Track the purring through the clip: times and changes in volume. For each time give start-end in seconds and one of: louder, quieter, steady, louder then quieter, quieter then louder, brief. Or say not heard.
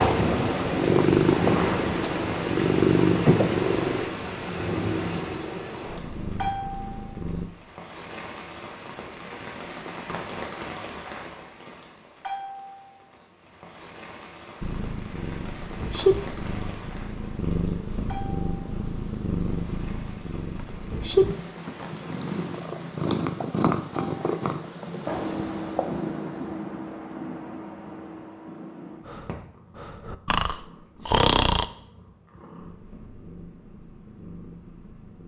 0.0-7.5 quieter
14.6-35.2 quieter.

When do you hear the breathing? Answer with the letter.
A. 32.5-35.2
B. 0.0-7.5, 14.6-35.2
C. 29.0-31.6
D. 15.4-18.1
C.